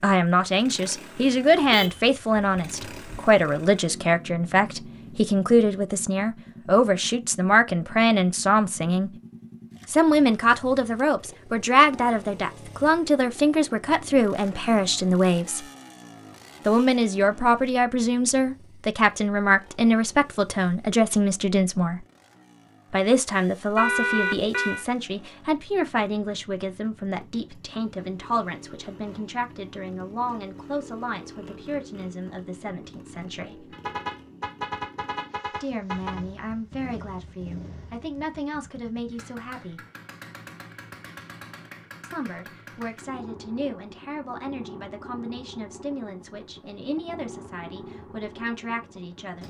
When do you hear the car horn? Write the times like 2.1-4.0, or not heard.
1.6-3.2, 23.8-24.9, 33.7-36.2.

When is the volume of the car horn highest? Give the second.
24 s.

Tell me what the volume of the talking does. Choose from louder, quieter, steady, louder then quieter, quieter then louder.
quieter.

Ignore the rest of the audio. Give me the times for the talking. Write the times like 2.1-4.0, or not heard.
0.0-9.1, 9.8-15.7, 16.6-22.1, 22.9-33.8, 35.5-39.9, 42.0-49.4.